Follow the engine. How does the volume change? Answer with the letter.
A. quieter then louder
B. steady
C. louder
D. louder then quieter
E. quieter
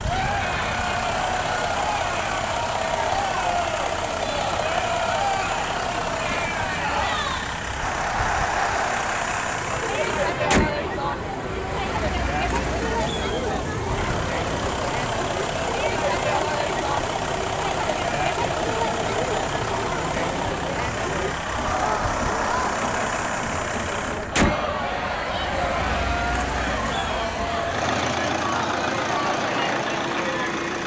B.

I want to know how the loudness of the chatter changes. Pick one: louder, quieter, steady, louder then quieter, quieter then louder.
steady.